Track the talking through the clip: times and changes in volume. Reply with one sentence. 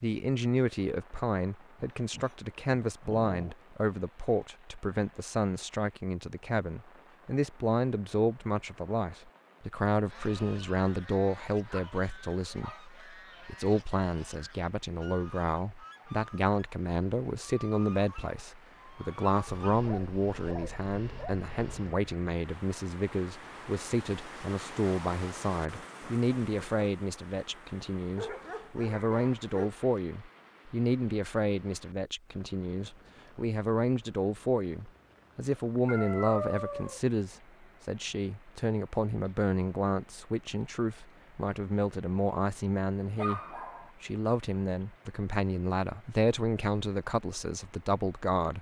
The talking can be heard from 0.0 to 48.5 s, at a steady volume.